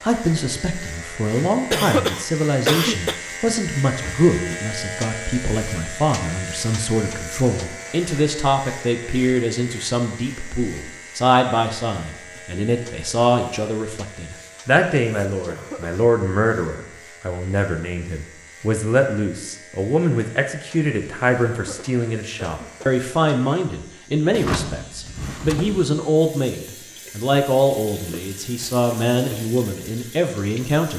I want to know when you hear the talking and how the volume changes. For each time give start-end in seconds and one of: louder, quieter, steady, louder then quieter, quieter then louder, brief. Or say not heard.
0.0-30.9 steady.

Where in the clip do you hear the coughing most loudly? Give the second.
2 s.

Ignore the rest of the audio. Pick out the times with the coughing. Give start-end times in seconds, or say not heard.
1.7-3.2, 15.4-16.1, 21.4-23.0.